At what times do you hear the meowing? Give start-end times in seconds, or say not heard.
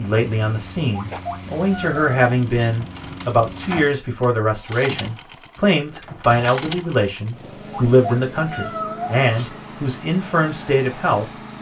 0.9-2.7, 7.7-9.5.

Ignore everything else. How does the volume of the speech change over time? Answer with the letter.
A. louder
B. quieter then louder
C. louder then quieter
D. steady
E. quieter
D.